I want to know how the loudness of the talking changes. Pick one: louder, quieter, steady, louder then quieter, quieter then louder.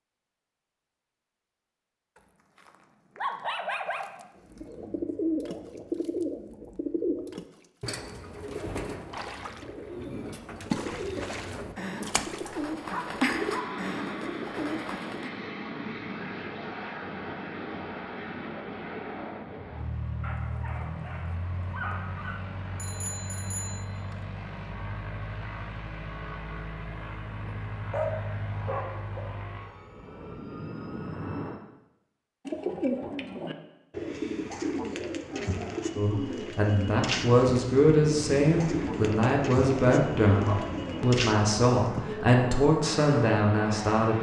steady.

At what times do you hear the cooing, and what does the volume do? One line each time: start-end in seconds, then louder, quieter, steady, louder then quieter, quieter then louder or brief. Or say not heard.
4.5-15.3 quieter then louder
32.5-42.3 steady.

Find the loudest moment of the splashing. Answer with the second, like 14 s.
11 s.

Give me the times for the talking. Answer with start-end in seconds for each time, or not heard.
36.0-44.1.